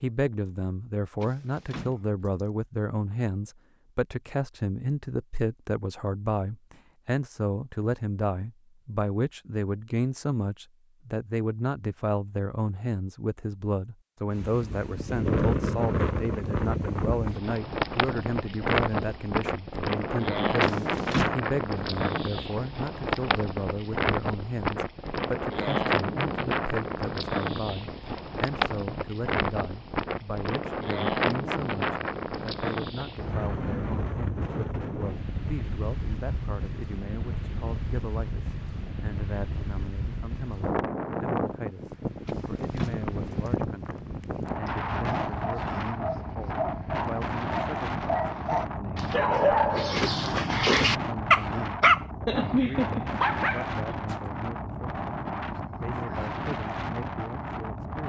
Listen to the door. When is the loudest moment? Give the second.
21 s.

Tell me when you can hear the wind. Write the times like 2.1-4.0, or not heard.
14.3-58.0.